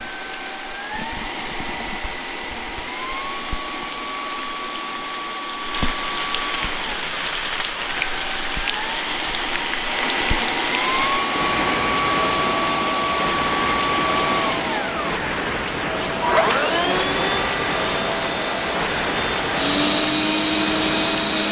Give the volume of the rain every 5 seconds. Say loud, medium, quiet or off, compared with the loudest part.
medium, loud, loud, loud, loud.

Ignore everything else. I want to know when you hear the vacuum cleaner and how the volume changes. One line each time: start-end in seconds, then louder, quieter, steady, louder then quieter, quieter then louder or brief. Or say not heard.
0.0-21.4 louder.